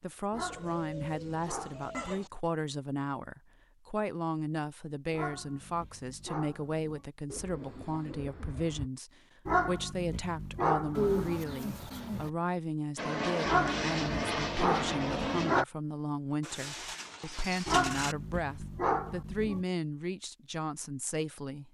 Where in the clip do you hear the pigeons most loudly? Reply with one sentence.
The loudest moment of the pigeons is at 11 seconds.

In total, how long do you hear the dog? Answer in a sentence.
The dog can be heard for 10 seconds in total.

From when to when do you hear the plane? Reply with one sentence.
You can hear the plane from 12.9 to 15.7 s.